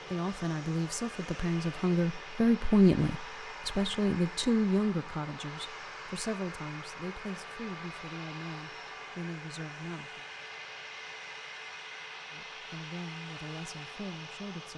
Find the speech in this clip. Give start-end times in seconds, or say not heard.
0.1-10.2, 12.3-14.7.